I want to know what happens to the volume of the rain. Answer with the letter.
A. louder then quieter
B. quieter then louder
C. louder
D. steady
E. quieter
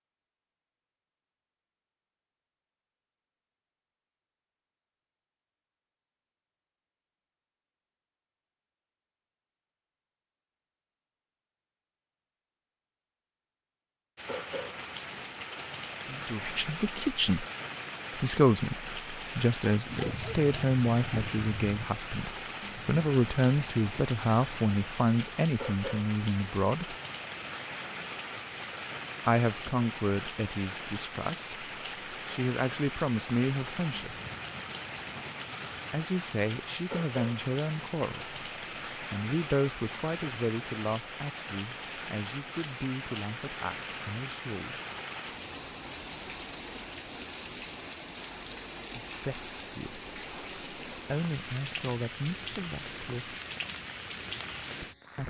D.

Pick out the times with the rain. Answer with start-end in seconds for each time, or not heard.
14.2-55.2.